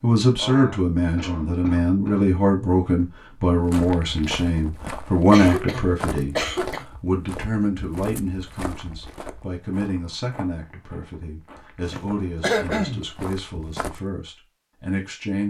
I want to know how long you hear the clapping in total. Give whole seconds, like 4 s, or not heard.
not heard.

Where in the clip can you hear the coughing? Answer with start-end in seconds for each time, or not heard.
0.3-2.2, 5.3-6.8, 11.8-13.1.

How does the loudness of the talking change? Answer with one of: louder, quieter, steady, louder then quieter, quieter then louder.
quieter.